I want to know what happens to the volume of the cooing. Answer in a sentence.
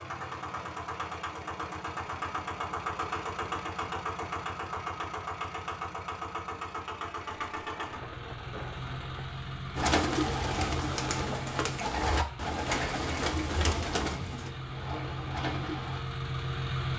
The loudness of the cooing goes down.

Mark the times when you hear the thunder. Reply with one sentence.
The thunder can be heard from 7.2 to 9.2 s.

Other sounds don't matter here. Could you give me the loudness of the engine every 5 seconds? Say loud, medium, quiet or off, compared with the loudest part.
loud, loud, medium, loud.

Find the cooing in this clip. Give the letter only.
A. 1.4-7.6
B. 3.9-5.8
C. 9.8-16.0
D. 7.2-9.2
C.